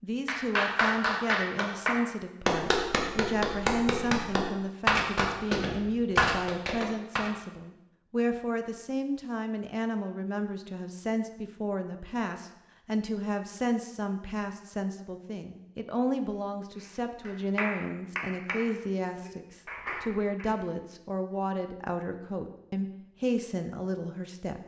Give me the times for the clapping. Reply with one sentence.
You can hear the clapping from 0.2 to 7.3 s and from 16.8 to 20.5 s.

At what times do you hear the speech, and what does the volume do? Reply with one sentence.
The speech can be heard from 0.0 to 24.6 s, at a steady volume.